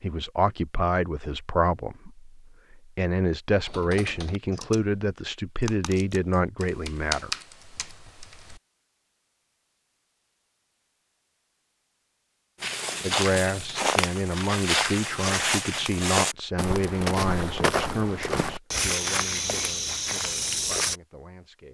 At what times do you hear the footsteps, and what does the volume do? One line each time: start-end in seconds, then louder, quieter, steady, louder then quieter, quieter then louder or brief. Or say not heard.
12.6-20.9 steady.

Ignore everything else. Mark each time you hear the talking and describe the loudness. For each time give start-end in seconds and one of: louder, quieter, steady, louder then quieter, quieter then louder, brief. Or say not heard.
0.0-7.3 quieter then louder
13.0-21.7 quieter.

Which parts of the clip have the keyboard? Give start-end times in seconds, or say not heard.
3.6-4.8, 5.6-8.6.